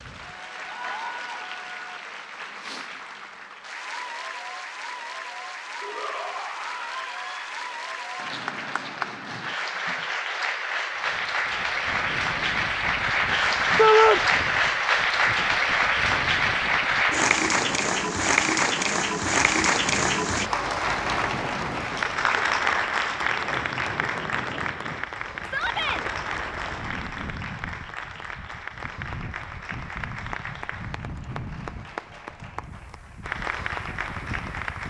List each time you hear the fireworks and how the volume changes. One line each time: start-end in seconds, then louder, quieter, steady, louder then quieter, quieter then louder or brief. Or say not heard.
not heard.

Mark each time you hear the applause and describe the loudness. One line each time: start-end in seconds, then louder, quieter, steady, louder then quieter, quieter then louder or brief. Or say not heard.
0.0-34.8 louder then quieter.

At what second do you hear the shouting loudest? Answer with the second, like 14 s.
14 s.